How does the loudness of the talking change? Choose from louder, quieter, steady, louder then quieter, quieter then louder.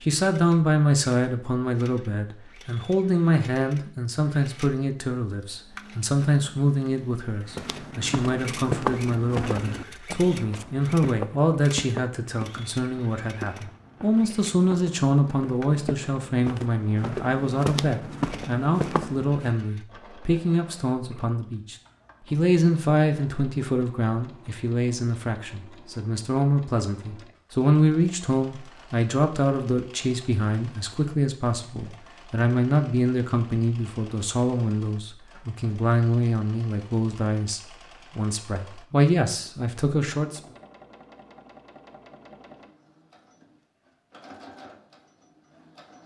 steady.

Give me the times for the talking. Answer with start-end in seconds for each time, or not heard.
0.0-40.4.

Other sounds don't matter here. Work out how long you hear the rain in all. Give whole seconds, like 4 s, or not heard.
not heard.